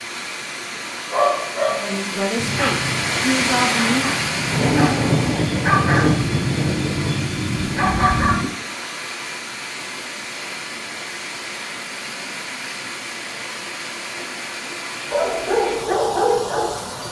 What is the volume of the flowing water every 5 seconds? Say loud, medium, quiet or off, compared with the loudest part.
loud, medium, medium, medium.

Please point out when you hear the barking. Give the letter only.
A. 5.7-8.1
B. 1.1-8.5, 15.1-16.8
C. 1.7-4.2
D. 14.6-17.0
B.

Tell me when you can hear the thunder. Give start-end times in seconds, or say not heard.
4.5-7.3.